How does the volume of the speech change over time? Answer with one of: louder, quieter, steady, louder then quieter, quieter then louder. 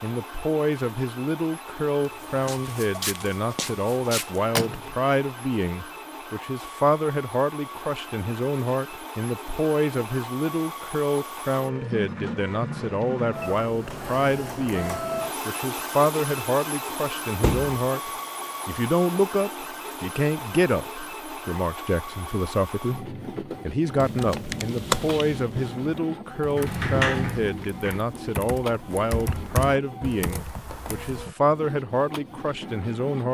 steady.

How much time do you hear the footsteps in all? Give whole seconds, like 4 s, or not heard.
2 s.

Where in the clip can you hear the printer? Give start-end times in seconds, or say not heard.
0.0-33.2.